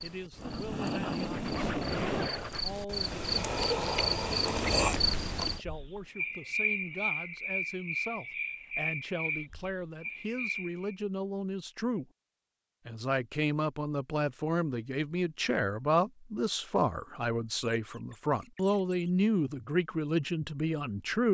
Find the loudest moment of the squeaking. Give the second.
2 s.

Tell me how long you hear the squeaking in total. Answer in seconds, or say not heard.
3 s.